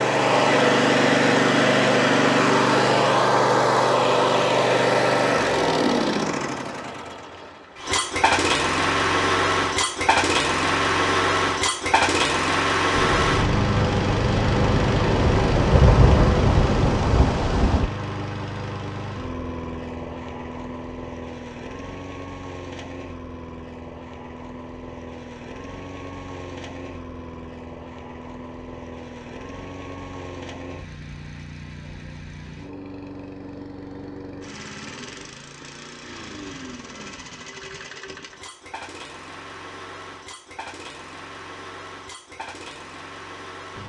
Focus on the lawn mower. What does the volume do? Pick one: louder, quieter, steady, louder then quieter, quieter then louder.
quieter.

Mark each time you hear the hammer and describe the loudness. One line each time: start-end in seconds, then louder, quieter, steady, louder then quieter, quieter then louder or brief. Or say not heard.
not heard.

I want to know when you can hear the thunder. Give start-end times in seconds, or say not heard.
12.9-17.9.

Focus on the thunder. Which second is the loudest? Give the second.
16 s.